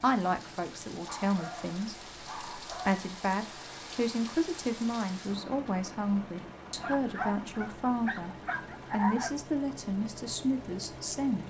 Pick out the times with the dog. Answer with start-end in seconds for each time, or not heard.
1.1-3.0, 6.8-9.3.